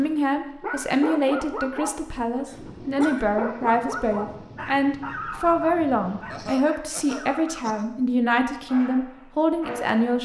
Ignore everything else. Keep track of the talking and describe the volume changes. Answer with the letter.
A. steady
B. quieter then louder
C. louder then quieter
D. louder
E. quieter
A.